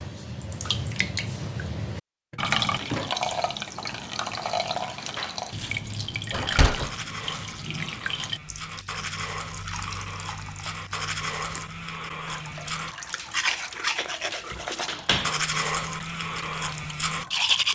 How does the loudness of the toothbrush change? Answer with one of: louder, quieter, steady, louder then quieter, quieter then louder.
louder.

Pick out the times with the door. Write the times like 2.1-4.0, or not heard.
2.3-3.1, 6.3-6.9, 14.5-15.4.